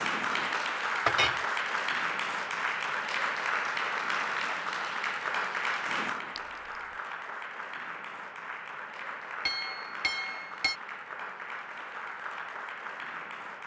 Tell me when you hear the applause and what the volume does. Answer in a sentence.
You can hear the applause from 0.0 to 13.6 s, getting quieter.